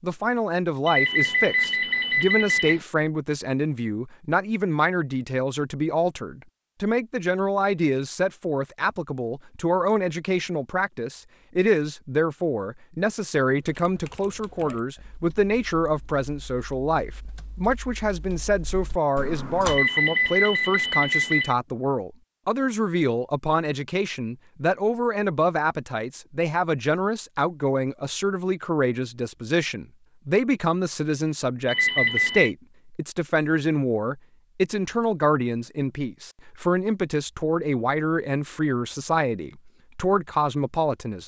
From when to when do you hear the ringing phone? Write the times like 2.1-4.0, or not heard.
0.8-2.9, 19.6-21.6, 31.6-32.5.